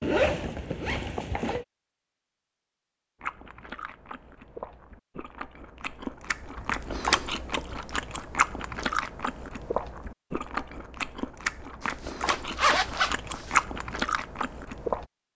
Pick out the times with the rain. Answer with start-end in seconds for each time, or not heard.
not heard.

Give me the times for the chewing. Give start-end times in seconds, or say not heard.
3.2-15.1.